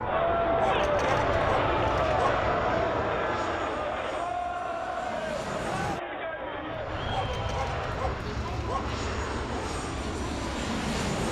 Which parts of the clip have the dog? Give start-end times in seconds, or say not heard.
0.6-2.5, 7.1-9.0.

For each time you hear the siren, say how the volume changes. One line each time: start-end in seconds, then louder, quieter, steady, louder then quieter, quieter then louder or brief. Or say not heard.
not heard.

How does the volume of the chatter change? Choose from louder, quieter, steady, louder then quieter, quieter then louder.
quieter.